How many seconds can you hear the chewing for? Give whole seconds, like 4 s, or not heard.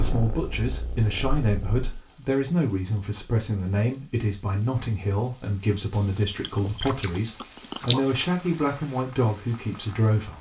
2 s.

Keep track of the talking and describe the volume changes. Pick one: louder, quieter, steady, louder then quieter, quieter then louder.
steady.